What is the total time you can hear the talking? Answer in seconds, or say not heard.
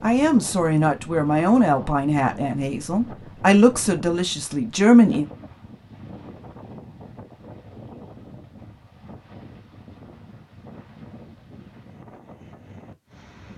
5 s.